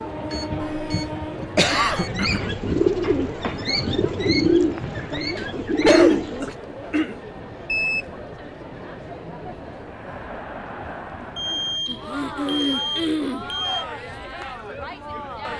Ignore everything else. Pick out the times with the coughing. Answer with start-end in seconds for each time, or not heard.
0.8-2.4, 5.3-7.2, 11.8-13.4.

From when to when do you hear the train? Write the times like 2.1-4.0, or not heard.
0.0-15.5.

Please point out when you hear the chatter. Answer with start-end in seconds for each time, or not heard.
0.0-15.5.